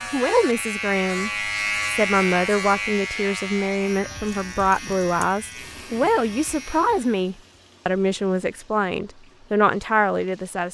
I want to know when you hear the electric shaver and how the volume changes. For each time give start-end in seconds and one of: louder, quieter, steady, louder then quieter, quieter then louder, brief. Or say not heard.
0.0-7.3 quieter.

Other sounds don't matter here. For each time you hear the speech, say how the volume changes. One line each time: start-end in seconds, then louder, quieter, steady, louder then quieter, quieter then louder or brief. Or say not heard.
0.1-10.6 steady.